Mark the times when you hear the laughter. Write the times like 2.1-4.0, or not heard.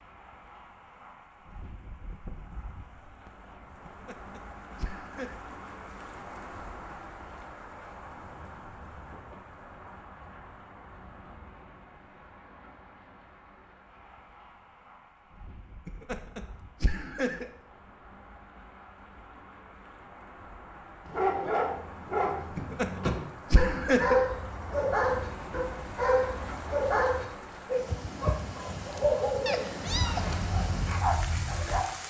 3.9-5.3, 15.8-17.5, 22.6-24.2.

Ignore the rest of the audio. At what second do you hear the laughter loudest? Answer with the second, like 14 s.
24 s.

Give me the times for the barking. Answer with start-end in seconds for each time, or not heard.
21.1-31.9.